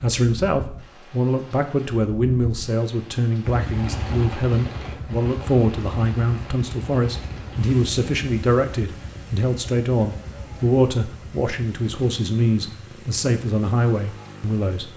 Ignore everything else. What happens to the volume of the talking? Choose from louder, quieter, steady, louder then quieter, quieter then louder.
steady.